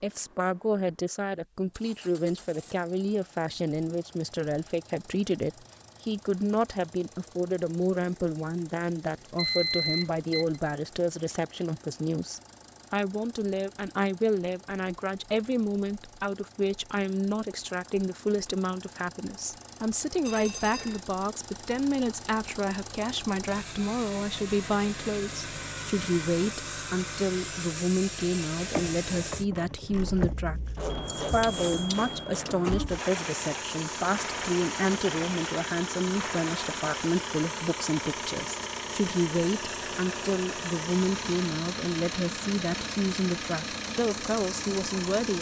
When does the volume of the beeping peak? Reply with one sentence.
The loudest moment of the beeping is at 10 seconds.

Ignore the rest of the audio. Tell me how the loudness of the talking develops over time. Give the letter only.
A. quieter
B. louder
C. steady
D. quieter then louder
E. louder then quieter
C.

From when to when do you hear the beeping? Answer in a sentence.
You can hear the beeping from 9.3 to 10.6 s, from 20.2 to 21.0 s and from 30.9 to 32.4 s.